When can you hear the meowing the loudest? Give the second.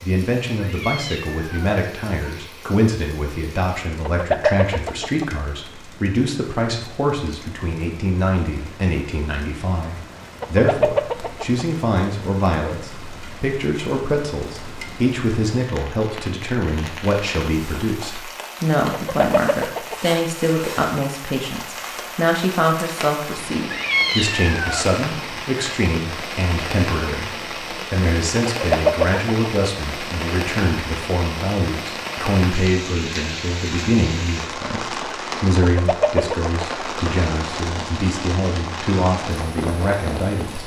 24 s.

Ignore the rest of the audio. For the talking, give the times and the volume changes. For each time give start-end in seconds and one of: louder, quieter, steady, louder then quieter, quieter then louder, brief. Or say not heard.
0.0-40.6 steady.